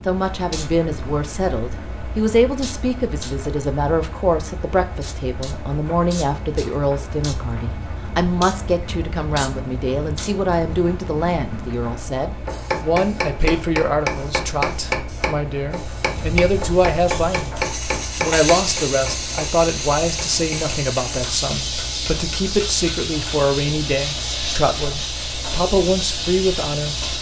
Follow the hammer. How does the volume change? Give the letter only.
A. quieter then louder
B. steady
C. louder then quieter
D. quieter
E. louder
D.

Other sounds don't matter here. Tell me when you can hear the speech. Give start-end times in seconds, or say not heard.
0.1-17.6, 18.2-27.1.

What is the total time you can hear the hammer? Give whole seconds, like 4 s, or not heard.
11 s.